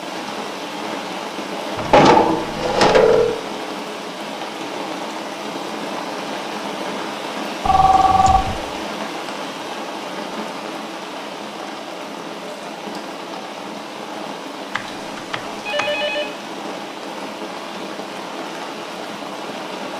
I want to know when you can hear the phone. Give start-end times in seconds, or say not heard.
1.8-3.4, 7.7-8.6, 14.8-16.3.